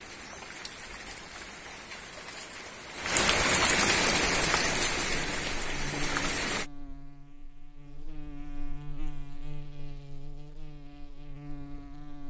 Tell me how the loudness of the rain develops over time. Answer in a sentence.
The loudness of the rain goes up, then down.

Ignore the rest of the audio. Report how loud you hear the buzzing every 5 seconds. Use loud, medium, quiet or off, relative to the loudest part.
off, loud, loud.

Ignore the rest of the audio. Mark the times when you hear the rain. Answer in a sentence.
You can hear the rain from 0.0 to 6.7 s.